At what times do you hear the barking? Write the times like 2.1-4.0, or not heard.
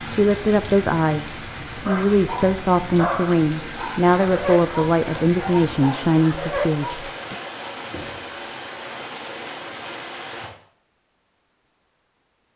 1.9-7.0.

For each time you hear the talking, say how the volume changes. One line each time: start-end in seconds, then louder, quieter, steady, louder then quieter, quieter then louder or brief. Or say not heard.
0.1-7.3 steady.